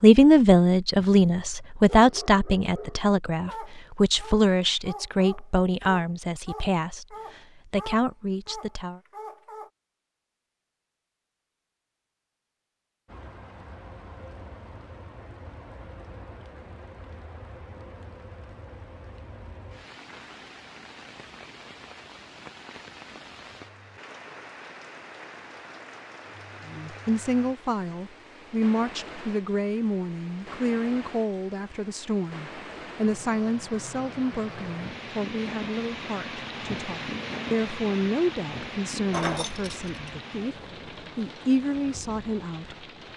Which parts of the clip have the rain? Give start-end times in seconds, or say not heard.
13.1-43.1.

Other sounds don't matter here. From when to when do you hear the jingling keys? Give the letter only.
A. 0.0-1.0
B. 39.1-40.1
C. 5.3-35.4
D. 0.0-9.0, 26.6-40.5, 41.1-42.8
B.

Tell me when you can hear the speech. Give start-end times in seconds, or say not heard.
0.0-9.0, 26.6-40.5, 41.1-42.8.